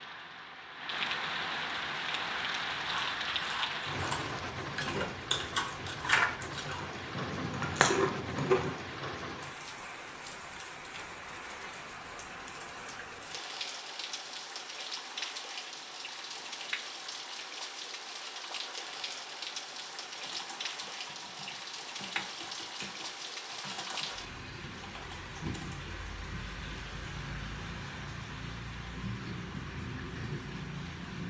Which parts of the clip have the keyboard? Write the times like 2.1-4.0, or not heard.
20.1-25.9.